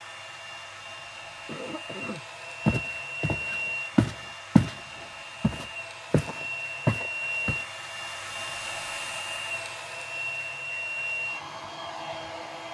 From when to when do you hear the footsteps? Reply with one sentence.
You can hear the footsteps from 2.6 to 4.8 s and from 5.4 to 7.6 s.